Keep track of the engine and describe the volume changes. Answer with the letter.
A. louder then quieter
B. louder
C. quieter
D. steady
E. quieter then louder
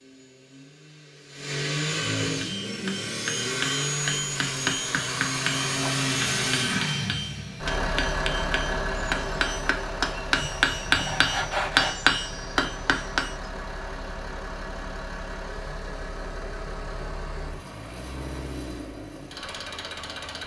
C.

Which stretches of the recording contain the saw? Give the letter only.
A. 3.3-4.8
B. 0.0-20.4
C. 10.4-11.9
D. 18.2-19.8
C.